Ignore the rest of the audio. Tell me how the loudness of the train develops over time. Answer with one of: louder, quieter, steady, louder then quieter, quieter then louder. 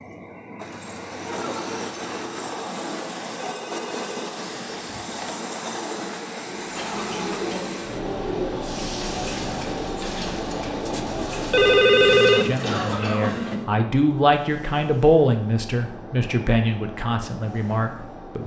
quieter.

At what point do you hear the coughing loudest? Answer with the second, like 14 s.
13 s.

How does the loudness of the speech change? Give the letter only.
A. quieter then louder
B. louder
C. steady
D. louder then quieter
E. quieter
D.